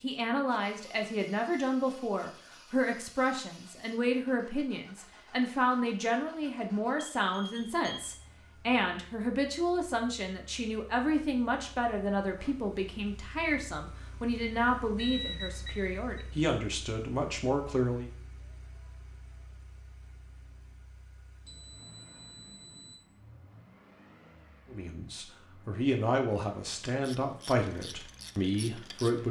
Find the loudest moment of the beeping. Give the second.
15 s.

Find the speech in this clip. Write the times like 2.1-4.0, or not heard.
0.0-18.1, 24.7-29.2.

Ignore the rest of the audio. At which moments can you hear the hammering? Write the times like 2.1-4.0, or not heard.
not heard.